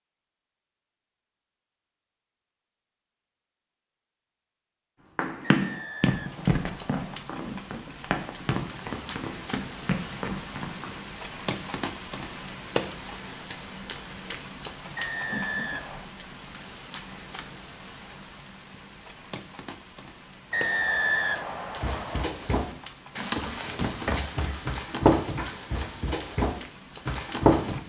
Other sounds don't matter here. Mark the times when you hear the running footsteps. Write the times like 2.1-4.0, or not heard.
5.0-11.0, 21.8-27.8.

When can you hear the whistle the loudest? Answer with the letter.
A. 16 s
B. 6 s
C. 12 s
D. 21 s
D.